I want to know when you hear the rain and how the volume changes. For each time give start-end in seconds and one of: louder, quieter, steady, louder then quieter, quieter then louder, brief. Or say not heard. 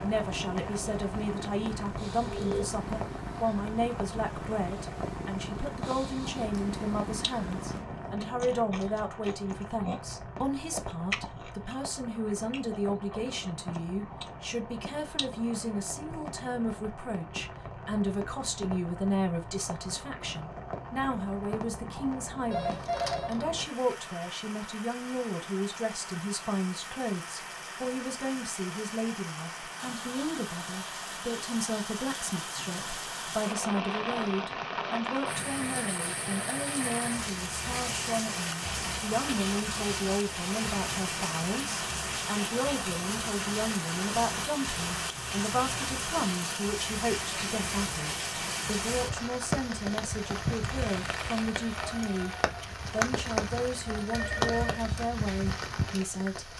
0.0-56.5 louder.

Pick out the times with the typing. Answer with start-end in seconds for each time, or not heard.
not heard.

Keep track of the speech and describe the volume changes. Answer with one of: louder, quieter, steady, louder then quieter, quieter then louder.
steady.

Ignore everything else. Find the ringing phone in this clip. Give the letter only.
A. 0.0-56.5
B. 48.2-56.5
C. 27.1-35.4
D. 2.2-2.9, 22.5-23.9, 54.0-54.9
D.